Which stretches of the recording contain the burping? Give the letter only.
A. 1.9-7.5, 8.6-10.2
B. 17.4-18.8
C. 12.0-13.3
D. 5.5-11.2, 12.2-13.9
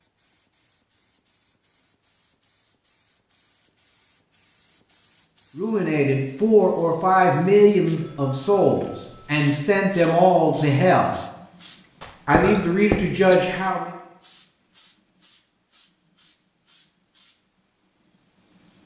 C.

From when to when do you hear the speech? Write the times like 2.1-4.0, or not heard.
5.5-11.2, 12.2-13.9.